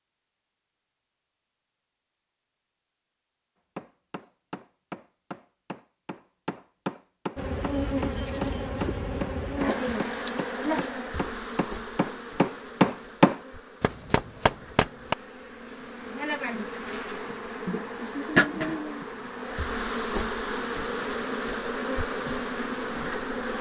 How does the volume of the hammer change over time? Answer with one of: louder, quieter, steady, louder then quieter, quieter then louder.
louder.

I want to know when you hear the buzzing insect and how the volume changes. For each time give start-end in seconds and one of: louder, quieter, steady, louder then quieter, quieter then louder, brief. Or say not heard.
7.3-23.5 quieter then louder.